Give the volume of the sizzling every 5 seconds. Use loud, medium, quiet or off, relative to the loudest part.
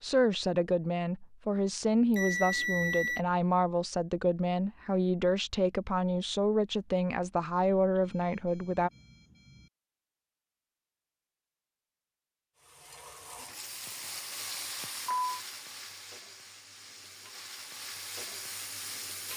off, off, loud, loud.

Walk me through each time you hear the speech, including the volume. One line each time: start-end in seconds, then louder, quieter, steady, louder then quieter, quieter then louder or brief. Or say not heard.
0.0-8.9 steady.